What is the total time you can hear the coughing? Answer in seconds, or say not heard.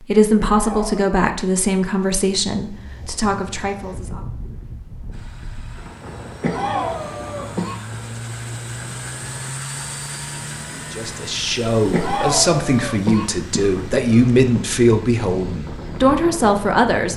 5 s.